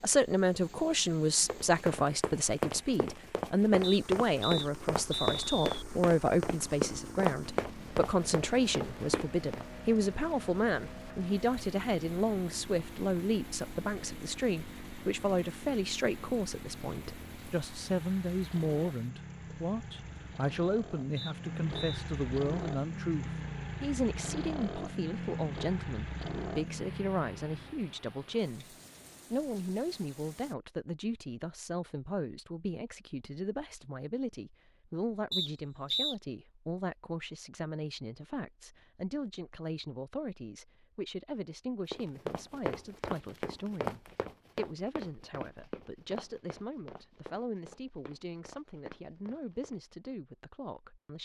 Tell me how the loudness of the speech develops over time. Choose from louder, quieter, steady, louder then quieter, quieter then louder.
quieter.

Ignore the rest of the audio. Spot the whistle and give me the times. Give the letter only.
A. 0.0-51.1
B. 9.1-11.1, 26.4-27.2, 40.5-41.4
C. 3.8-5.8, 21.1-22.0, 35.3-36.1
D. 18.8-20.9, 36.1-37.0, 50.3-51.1
C.